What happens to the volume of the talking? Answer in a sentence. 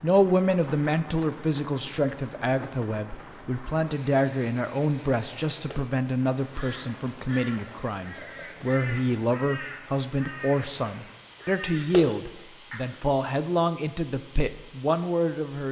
The loudness of the talking stays about the same.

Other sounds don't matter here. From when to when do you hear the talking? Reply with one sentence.
The talking can be heard from 0.0 to 15.6 s.